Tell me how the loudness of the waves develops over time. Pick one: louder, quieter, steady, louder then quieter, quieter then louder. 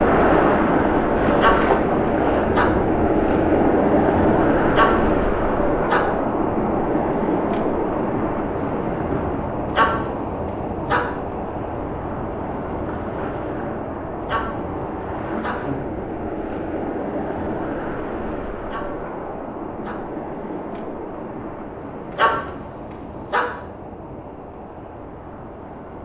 quieter.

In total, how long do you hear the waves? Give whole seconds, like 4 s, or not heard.
26 s.